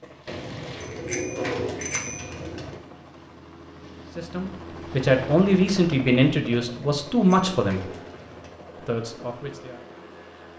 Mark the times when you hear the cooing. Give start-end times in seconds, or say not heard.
0.2-2.8, 6.5-8.6.